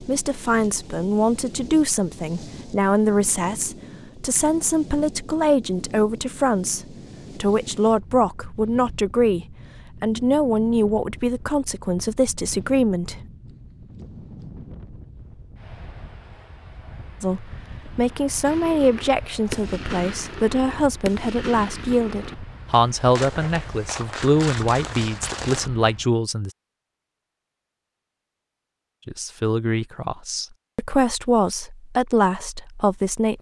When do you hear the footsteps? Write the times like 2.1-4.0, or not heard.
not heard.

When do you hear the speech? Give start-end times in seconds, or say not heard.
0.0-13.2, 17.2-26.5, 29.1-33.3.